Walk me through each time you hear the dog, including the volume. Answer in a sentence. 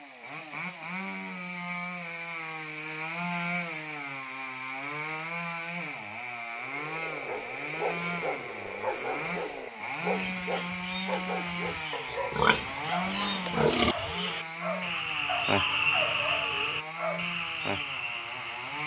The dog can be heard from 7.2 to 17.2 s, at a steady volume.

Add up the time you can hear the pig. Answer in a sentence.
You can hear the pig for 2 seconds altogether.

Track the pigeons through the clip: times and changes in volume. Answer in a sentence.
The pigeons can't be heard in this clip.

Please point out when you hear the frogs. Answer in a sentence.
The frogs can be heard from 6.5 to 18.8 s.